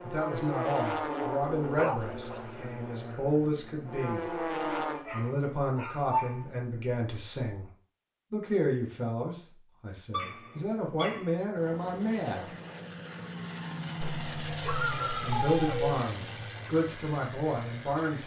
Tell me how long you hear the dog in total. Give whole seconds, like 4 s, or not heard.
6 s.